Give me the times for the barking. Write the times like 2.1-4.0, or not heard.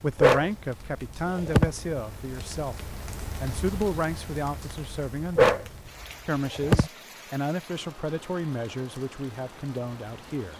0.1-1.7, 5.3-6.9.